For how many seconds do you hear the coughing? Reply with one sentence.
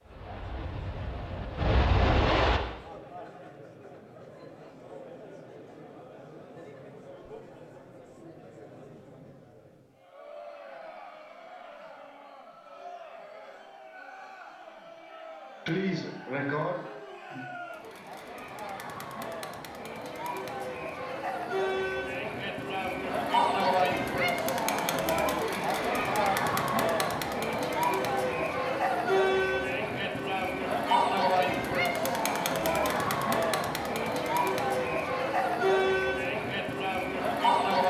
The coughing can be heard for 2 seconds in total.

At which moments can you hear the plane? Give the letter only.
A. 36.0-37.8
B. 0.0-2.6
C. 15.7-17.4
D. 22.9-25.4
B.